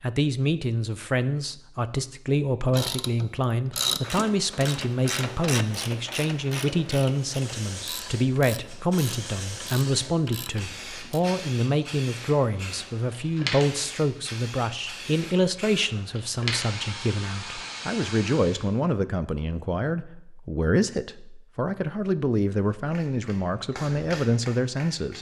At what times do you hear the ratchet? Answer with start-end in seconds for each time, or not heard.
2.7-11.2.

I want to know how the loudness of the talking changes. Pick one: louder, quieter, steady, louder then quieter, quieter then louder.
steady.